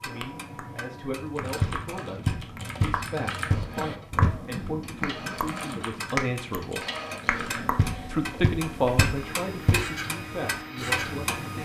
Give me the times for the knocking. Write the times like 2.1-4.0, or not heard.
1.6-4.3, 7.8-9.8.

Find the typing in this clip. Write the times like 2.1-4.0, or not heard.
1.2-9.1.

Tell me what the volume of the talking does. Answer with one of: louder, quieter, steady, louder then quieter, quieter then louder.
louder then quieter.